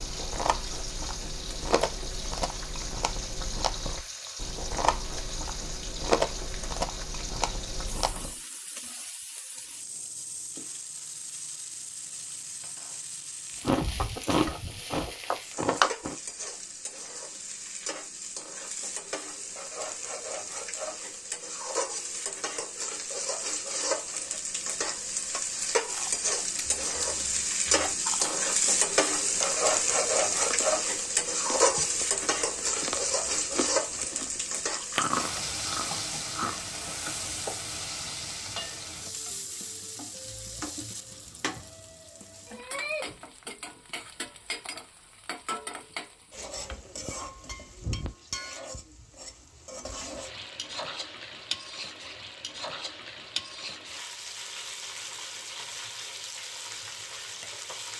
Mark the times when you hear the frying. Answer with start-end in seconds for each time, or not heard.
0.0-57.9.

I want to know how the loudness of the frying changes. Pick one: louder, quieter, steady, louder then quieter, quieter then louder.
louder then quieter.